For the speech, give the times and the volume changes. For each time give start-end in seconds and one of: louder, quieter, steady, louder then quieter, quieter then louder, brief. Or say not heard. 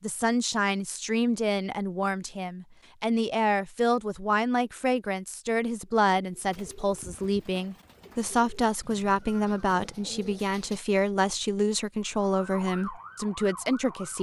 0.0-14.1 steady.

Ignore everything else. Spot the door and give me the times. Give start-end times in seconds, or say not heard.
not heard.